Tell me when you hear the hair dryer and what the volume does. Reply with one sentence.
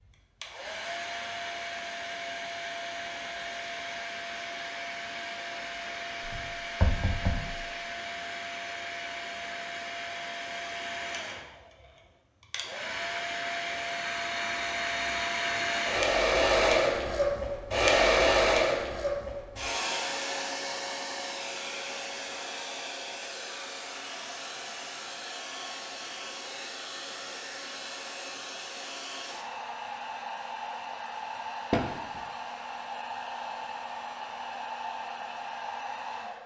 You can hear the hair dryer from 0.0 to 36.4 s, getting louder then quieter.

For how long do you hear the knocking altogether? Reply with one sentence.
The knocking can be heard for 2 seconds in total.